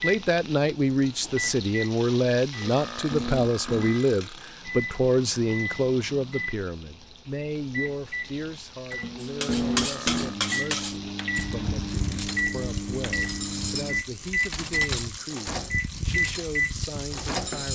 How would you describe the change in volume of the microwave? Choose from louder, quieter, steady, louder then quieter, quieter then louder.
louder.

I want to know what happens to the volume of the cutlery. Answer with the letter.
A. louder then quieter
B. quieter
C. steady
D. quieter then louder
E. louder
B.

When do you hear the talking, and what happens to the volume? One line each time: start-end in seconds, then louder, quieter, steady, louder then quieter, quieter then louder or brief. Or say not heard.
0.0-17.7 quieter.